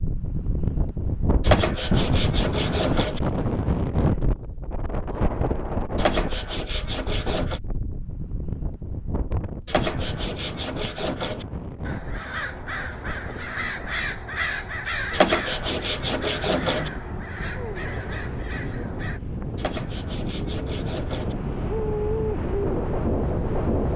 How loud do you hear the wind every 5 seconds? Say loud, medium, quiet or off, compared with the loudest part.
loud, medium, medium, medium, loud.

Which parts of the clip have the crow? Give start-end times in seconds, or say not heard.
11.8-19.2.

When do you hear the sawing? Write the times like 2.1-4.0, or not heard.
1.4-3.2, 6.0-7.6, 9.7-11.4, 15.1-16.9, 19.6-21.4.